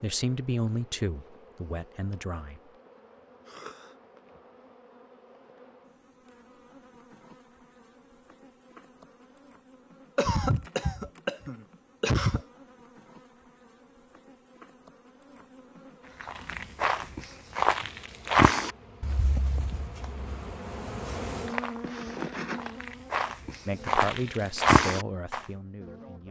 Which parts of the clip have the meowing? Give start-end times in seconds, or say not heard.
not heard.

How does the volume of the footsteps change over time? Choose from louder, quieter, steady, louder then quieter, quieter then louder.
quieter then louder.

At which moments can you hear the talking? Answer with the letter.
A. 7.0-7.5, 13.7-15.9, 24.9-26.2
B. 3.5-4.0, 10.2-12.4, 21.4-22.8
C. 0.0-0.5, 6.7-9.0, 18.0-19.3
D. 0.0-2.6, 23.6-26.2
D.